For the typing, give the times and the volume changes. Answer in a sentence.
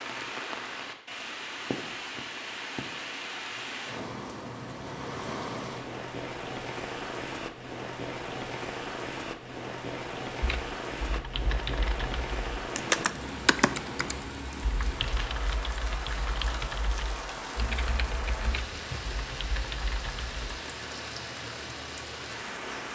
You can hear the typing from 10.4 to 20.4 s, getting louder then quieter.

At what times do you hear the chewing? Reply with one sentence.
You can't hear the chewing here.